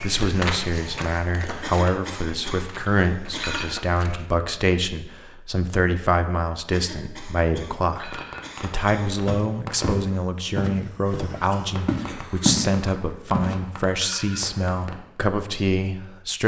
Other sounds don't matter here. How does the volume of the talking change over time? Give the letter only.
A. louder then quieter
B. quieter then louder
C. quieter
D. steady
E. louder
D.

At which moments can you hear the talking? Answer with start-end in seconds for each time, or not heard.
0.0-16.4.